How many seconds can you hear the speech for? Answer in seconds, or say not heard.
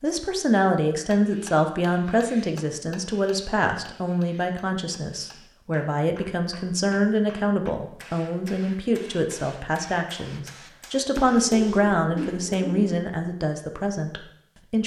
15 s.